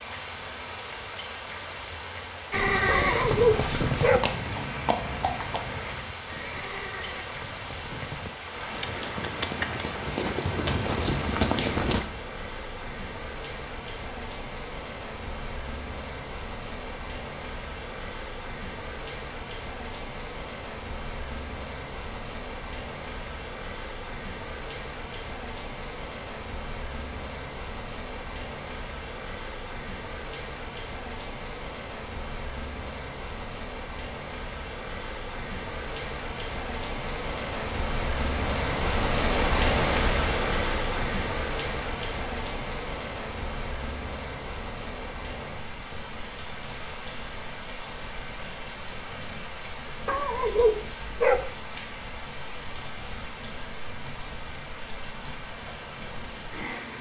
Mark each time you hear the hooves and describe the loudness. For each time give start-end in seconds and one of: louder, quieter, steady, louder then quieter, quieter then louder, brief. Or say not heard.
2.5-12.1 quieter then louder.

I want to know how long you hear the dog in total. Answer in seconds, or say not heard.
3 s.